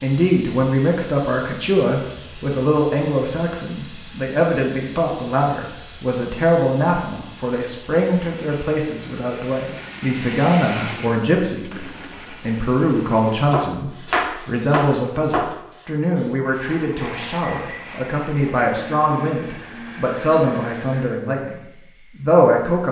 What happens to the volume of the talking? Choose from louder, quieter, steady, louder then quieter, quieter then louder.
steady.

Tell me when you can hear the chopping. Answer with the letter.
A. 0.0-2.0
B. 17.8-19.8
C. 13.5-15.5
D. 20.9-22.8
C.